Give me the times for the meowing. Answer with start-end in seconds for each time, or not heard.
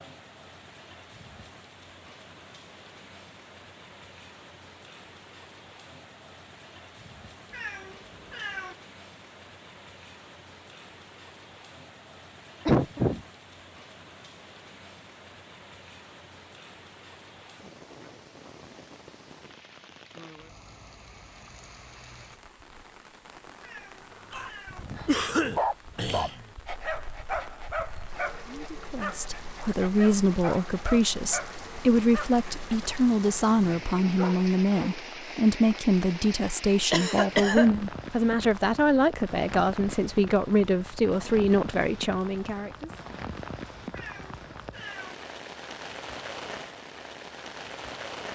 7.5-8.8, 23.6-24.9, 43.9-45.1.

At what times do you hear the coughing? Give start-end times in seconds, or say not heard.
12.7-13.2, 25.1-26.4, 36.9-37.7.